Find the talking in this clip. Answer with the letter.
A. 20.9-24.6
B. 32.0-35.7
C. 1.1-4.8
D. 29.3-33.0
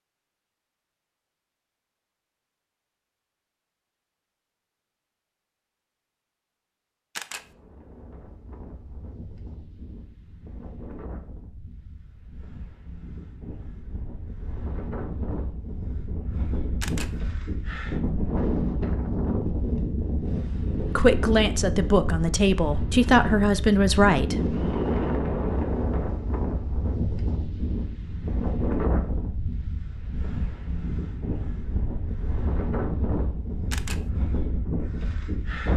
A.